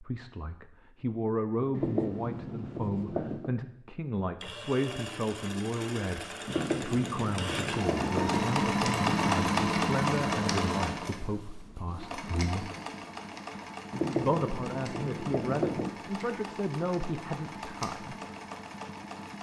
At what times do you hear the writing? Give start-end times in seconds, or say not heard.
1.8-3.5, 6.5-8.4, 13.9-15.9.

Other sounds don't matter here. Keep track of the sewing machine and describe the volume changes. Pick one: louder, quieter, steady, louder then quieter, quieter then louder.
louder then quieter.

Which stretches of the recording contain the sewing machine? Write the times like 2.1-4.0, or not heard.
4.4-19.3.